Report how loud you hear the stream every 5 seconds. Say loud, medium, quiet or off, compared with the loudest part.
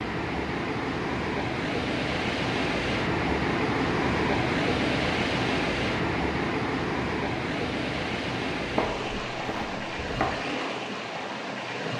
loud, loud, medium.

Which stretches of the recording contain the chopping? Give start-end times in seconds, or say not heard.
8.8-10.3.